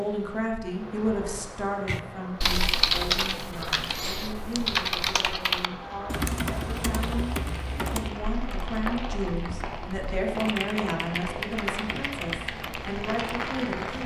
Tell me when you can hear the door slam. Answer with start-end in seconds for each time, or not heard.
not heard.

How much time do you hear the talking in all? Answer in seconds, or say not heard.
14 s.